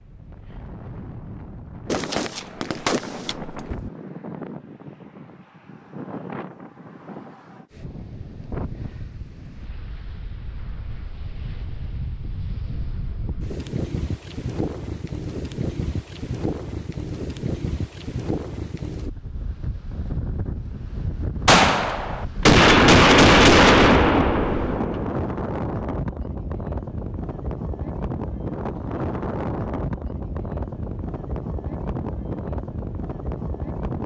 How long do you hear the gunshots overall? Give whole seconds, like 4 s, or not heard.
6 s.